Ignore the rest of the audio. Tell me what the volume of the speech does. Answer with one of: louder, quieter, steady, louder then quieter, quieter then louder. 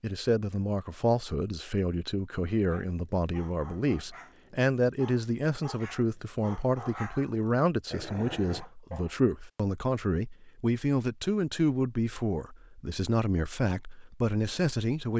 steady.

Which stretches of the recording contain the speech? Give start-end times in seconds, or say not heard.
0.0-15.1.